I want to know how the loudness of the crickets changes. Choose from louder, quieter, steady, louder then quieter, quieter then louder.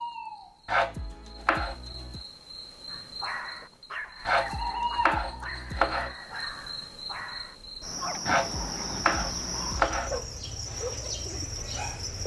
louder.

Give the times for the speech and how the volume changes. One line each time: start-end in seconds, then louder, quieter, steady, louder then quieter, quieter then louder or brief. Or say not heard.
not heard.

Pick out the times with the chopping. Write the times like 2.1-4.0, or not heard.
0.7-2.2, 4.2-6.2, 8.2-10.2.